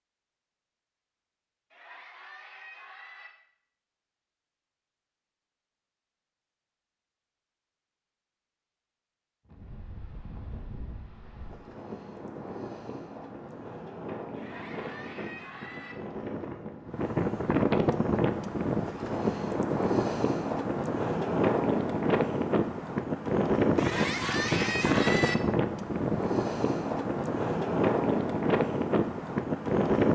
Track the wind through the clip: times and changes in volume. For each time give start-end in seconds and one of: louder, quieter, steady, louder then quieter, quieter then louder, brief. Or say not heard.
9.4-30.1 louder.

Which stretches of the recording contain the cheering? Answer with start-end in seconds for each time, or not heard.
1.7-3.3, 14.3-15.9, 23.8-25.4.